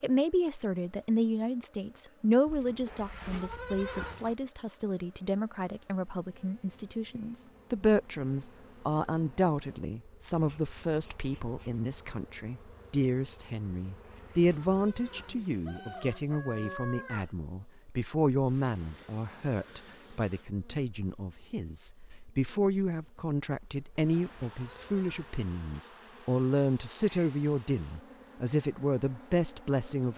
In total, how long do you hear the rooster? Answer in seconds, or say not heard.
2 s.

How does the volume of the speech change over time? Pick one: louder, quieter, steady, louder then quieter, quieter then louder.
steady.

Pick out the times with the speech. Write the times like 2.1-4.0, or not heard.
0.0-30.1.